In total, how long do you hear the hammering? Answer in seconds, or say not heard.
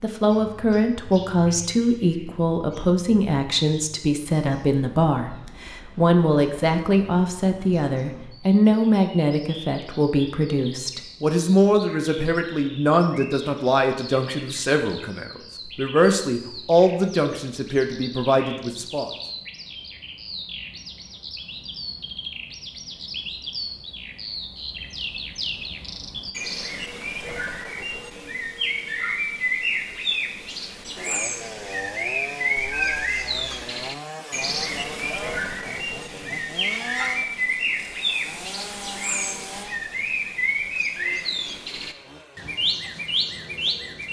not heard.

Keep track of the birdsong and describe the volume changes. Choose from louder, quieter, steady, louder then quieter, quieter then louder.
louder.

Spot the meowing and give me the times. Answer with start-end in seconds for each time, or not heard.
32.5-33.6.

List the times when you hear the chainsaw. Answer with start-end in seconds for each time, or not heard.
30.9-44.0.